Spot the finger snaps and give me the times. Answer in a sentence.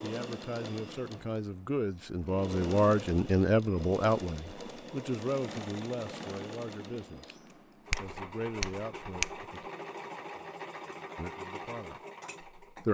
The finger snaps can be heard from 7.9 to 9.4 s.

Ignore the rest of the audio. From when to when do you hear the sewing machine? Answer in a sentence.
The sewing machine can be heard from 0.0 to 12.8 s.